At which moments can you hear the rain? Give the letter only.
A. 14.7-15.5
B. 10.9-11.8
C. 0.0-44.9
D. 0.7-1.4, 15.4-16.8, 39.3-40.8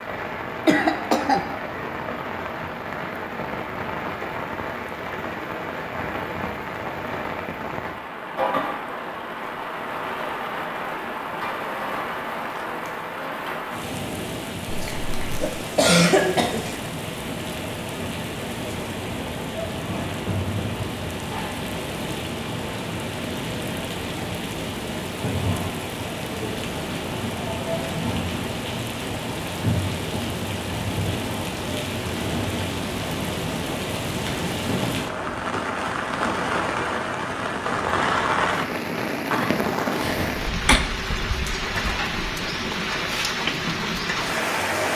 C.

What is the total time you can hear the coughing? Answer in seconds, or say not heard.
4 s.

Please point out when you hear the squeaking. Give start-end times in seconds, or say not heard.
14.7-15.5.